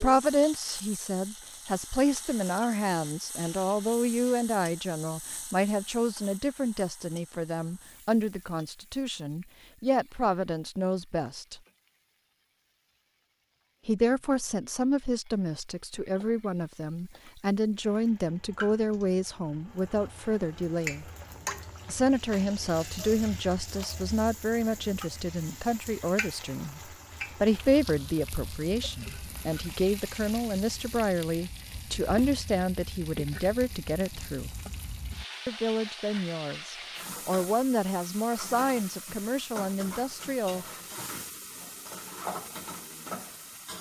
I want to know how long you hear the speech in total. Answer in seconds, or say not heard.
37 s.